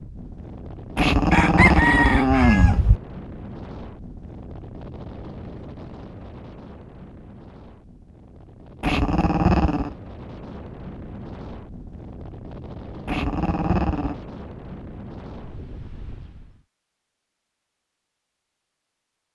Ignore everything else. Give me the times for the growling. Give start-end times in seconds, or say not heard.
0.9-3.0, 8.8-9.9, 13.1-14.2.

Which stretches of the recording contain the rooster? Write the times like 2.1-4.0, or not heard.
1.3-2.8.